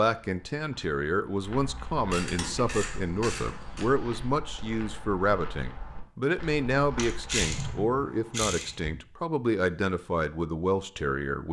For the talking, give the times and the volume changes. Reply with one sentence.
The talking can be heard from 0.0 to 11.4 s, at a steady volume.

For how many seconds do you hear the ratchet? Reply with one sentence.
The ratchet can be heard for 4 seconds in total.